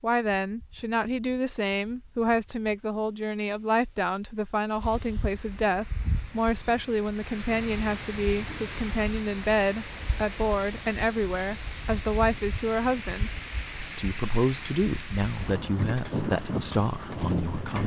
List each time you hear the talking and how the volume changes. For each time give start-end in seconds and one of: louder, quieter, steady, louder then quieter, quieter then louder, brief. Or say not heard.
0.0-17.8 steady.